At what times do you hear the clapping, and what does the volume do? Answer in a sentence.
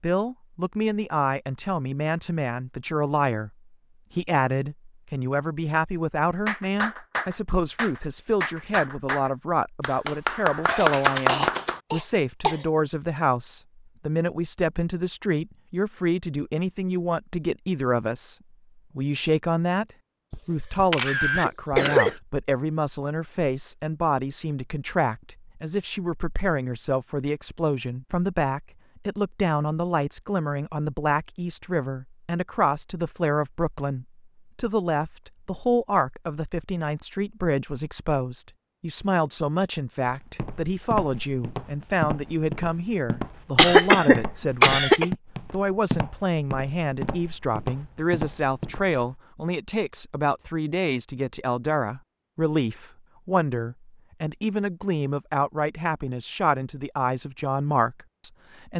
The clapping can be heard from 6.5 to 11.8 s, getting louder.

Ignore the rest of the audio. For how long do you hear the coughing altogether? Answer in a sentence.
You can hear the coughing for 5 seconds altogether.